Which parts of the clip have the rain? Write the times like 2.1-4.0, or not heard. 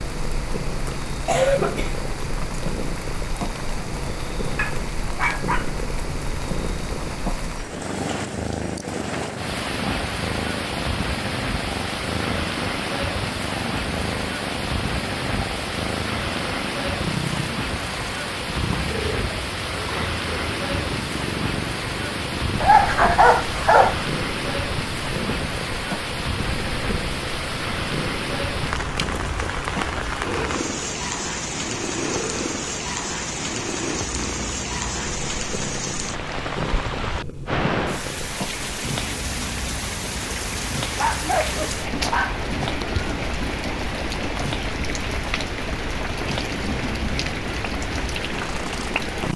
0.0-49.3.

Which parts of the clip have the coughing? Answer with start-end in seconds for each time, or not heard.
1.2-1.9.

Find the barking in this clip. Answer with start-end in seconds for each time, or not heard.
4.5-5.7, 22.6-24.1, 41.0-43.0.